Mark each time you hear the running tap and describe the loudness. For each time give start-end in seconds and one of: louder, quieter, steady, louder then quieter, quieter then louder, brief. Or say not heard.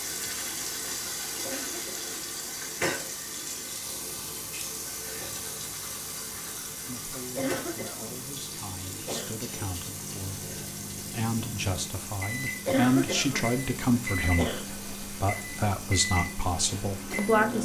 0.0-17.5 quieter.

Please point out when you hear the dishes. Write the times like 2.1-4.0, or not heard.
not heard.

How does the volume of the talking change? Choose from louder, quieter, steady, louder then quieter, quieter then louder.
louder.